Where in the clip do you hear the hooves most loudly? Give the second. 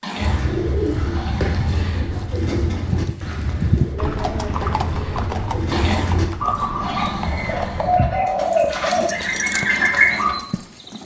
4 s.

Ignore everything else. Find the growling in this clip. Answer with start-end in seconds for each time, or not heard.
0.0-2.1, 5.7-8.0.